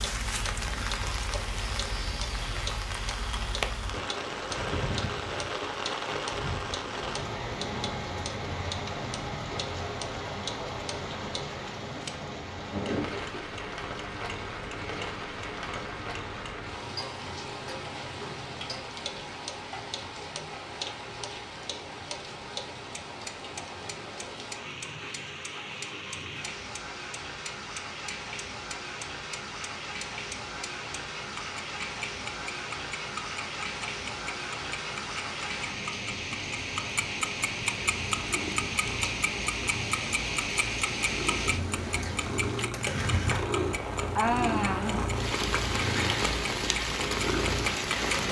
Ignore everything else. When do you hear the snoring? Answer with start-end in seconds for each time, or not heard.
not heard.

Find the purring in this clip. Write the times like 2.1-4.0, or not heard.
37.8-48.2.